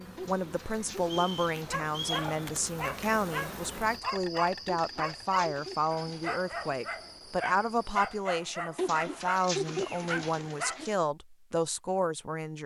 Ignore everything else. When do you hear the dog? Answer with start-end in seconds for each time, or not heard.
1.6-10.8.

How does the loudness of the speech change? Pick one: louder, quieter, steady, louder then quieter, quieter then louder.
steady.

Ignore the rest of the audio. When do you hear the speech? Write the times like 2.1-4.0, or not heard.
0.0-12.6.